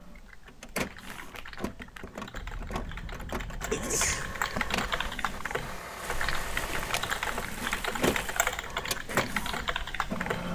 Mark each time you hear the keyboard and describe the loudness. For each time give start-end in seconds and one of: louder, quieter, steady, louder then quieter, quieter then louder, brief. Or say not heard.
0.0-10.4 louder.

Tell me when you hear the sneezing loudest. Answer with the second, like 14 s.
4 s.